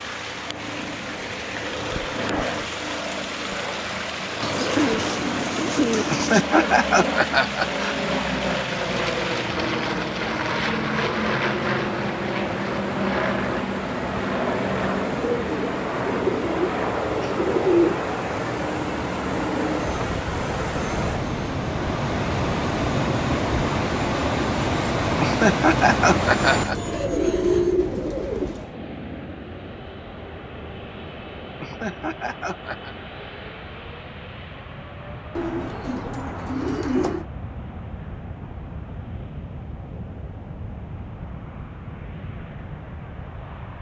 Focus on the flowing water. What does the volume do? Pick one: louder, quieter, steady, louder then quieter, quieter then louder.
louder.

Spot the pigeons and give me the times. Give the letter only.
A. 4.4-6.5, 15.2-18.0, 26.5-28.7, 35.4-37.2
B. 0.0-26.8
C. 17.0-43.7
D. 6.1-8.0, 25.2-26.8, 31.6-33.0
A.